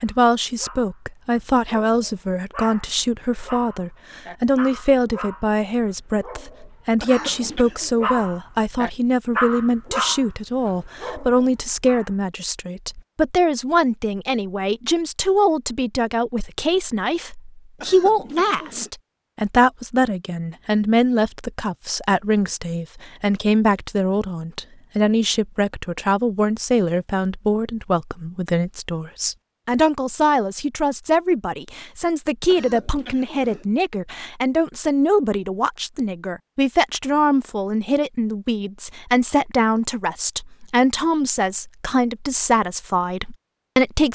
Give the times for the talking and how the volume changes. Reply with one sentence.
The talking can be heard from 0.0 to 44.1 s, at a steady volume.